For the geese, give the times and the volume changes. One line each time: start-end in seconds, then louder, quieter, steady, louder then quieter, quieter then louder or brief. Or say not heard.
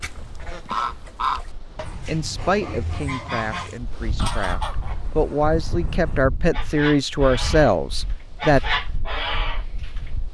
0.0-10.1 quieter then louder.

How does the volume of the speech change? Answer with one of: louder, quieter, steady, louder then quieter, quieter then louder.
quieter then louder.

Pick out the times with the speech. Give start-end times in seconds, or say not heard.
2.0-8.6.